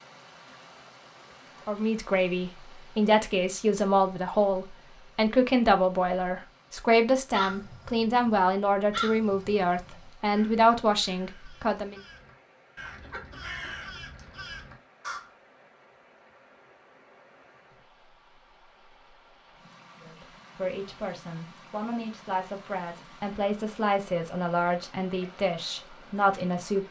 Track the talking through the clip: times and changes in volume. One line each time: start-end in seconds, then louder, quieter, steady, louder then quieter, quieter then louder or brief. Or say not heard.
1.6-12.0 steady
20.0-26.8 louder.